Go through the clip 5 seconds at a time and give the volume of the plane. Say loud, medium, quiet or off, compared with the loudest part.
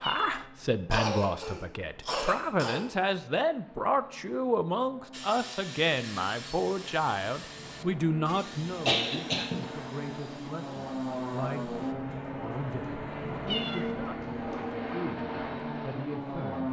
quiet, medium, loud, loud.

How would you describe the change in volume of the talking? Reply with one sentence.
The volume of the talking goes down.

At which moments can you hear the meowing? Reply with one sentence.
You can hear the meowing from 0.0 to 0.5 s and from 13.4 to 13.9 s.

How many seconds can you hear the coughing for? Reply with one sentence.
The coughing can be heard for 3 seconds in total.